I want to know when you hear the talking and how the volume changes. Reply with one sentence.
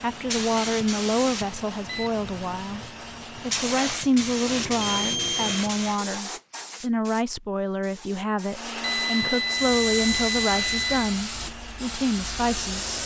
The talking can be heard from 0.0 to 12.9 s, at a steady volume.